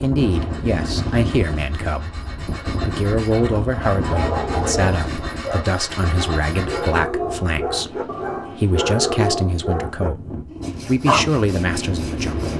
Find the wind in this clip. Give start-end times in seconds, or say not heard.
0.0-12.5.